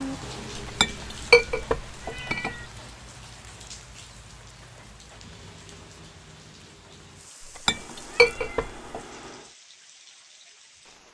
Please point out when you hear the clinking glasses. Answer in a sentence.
You can hear the clinking glasses from 0.7 to 2.5 s and from 7.5 to 9.0 s.